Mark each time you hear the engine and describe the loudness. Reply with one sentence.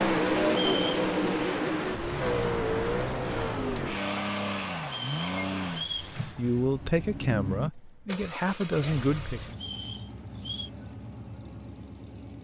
You can hear the engine from 0.0 to 12.3 s, getting quieter.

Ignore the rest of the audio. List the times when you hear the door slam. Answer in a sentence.
You can't hear the door slam here.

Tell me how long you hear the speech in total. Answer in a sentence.
You can hear the speech for 3 seconds altogether.